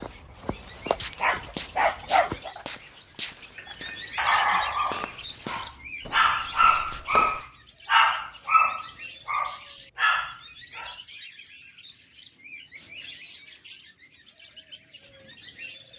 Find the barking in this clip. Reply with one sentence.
You can hear the barking from 0.0 to 2.5 s and from 4.2 to 10.9 s.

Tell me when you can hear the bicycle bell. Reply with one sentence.
The bicycle bell can be heard from 3.5 to 4.6 s.